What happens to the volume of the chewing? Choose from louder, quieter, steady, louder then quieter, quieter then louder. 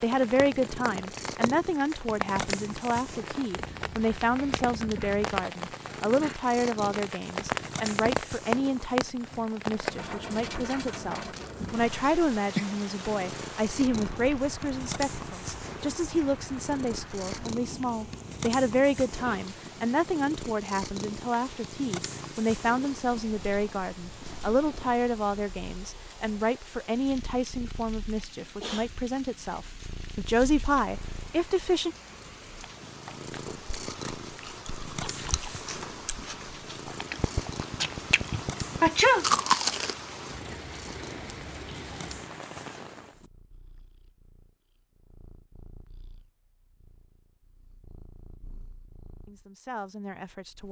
louder.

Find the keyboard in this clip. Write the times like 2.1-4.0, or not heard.
not heard.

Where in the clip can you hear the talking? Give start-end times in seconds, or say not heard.
0.0-31.9, 49.2-50.6.